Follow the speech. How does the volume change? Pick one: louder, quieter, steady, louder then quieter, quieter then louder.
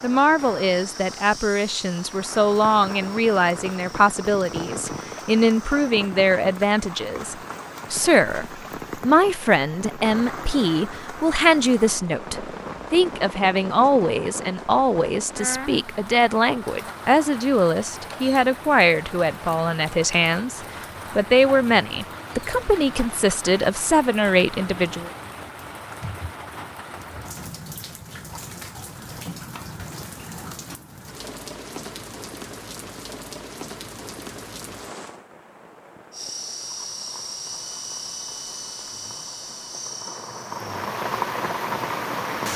steady.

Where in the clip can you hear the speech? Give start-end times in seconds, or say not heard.
0.0-25.1.